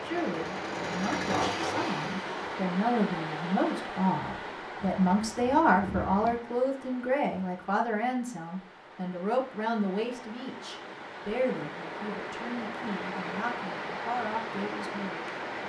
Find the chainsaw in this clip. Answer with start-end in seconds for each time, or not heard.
0.0-2.6.